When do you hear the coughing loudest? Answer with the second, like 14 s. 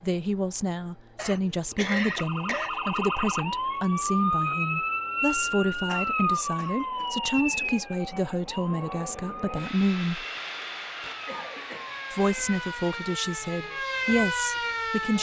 2 s.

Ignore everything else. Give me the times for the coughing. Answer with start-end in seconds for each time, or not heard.
1.1-2.7, 5.8-7.0, 11.2-12.0.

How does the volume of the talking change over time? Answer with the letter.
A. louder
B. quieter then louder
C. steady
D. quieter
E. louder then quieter
C.